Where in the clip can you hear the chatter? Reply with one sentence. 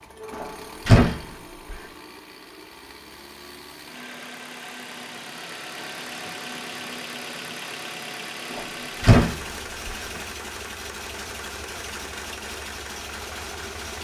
You can't hear the chatter here.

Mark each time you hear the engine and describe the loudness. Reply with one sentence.
You can hear the engine from 0.0 to 13.9 s, getting louder.